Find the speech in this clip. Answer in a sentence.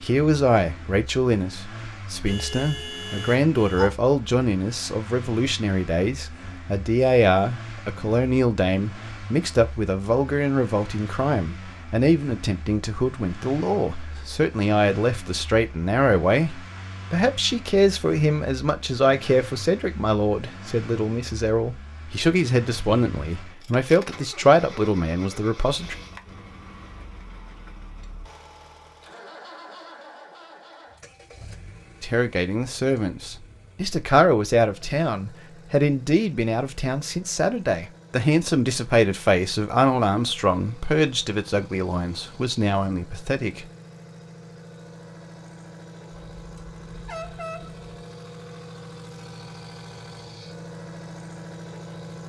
You can hear the speech from 0.0 to 25.9 s and from 32.0 to 43.6 s.